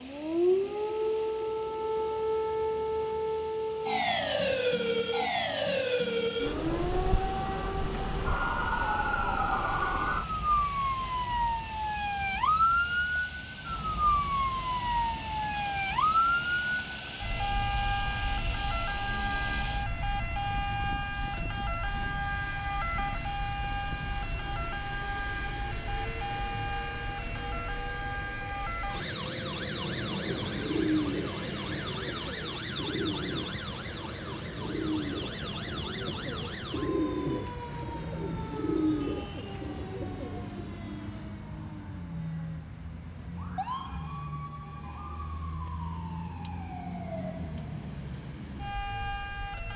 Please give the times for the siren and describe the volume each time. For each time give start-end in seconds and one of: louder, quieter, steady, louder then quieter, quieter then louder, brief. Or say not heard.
0.0-49.7 quieter.